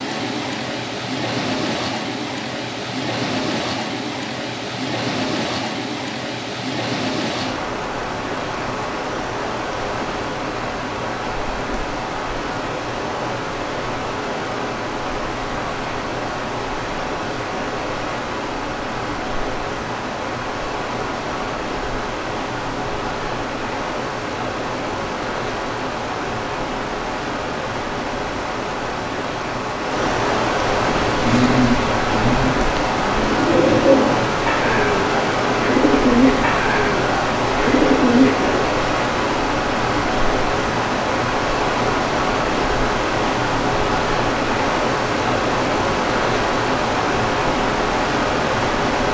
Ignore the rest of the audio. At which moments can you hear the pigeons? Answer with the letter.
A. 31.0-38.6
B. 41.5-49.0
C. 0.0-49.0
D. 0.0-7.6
A.